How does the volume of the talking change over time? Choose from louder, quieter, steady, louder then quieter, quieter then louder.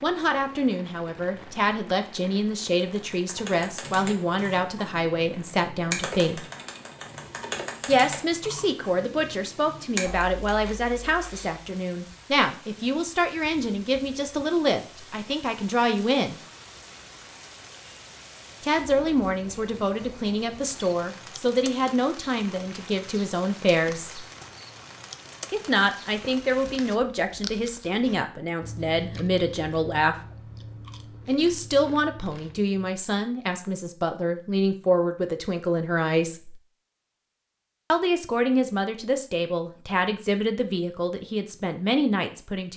steady.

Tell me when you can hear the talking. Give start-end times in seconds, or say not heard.
0.0-6.4, 7.8-16.4, 18.6-24.2, 25.5-30.1, 31.2-36.5, 37.9-42.7.